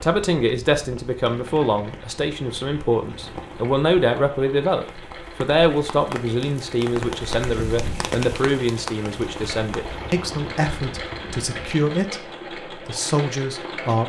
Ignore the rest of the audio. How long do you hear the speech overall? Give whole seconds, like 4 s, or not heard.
14 s.